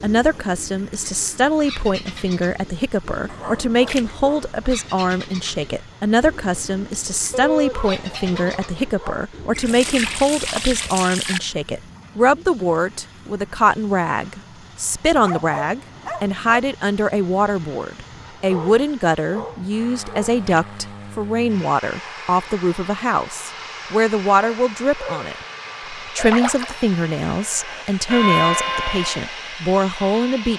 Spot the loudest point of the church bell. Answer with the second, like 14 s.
28 s.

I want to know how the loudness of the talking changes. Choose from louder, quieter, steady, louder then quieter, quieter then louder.
steady.